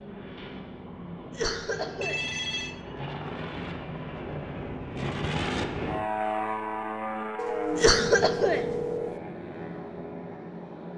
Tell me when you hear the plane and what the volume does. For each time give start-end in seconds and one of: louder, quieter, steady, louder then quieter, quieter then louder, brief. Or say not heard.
0.0-10.9 louder then quieter.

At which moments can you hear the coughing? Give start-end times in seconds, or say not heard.
1.3-2.2, 7.8-8.6.